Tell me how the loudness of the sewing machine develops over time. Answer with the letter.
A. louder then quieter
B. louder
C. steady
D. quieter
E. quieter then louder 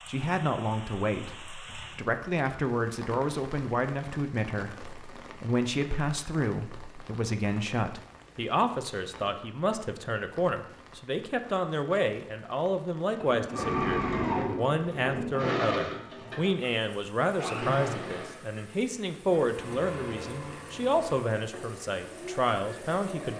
D.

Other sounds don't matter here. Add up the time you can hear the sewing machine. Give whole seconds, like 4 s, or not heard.
10 s.